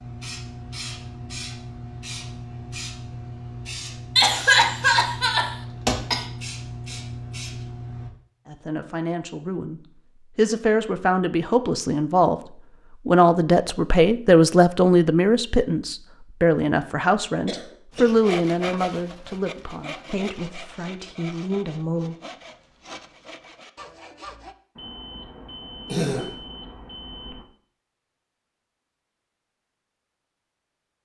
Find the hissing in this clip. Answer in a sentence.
You can hear the hissing from 0.0 to 8.1 s.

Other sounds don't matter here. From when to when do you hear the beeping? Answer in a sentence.
You can hear the beeping from 24.8 to 27.4 s.